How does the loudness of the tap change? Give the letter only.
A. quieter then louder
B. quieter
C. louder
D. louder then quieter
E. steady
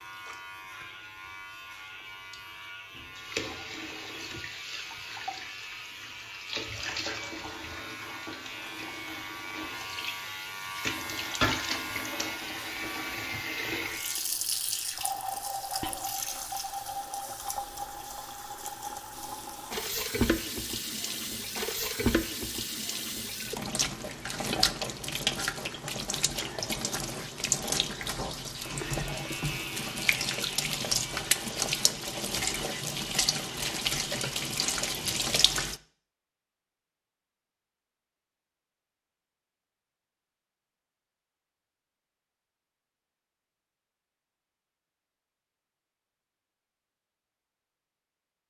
C.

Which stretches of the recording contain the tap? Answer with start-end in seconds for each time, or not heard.
0.0-35.8.